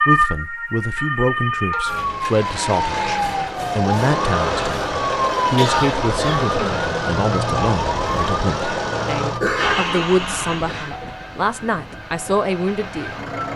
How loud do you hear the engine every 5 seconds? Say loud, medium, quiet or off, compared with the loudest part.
loud, loud, medium.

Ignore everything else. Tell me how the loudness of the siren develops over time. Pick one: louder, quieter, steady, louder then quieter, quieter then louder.
quieter.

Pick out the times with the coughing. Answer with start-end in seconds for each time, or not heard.
1.7-2.5, 5.5-6.9, 9.4-10.1.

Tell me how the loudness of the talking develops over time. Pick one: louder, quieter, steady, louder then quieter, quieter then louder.
steady.